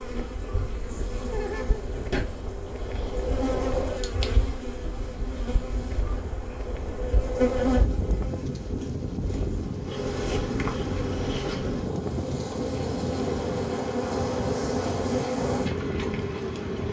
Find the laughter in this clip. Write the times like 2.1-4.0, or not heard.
1.2-2.0.